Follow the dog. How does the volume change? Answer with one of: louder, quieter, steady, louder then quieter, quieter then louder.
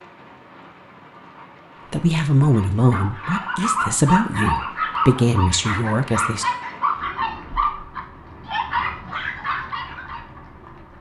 steady.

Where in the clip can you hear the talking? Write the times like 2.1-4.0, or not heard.
1.9-6.5.